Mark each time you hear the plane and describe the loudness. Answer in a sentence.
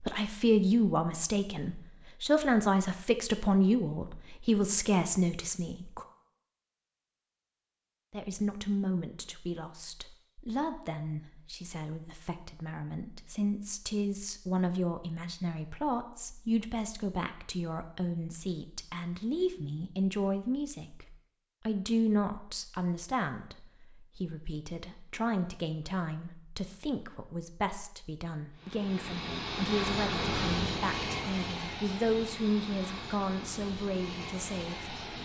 The plane can be heard from 28.6 to 35.1 s, getting quieter.